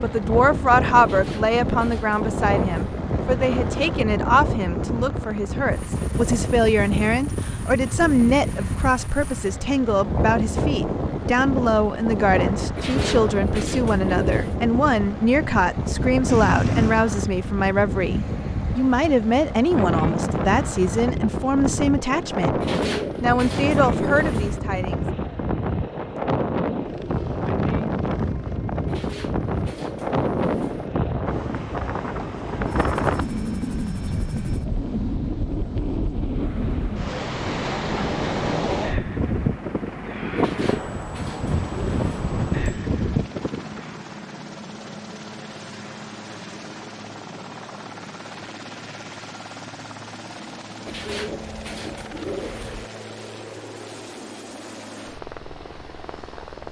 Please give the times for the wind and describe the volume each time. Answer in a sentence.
You can hear the wind from 0.0 to 44.0 s, at a steady volume.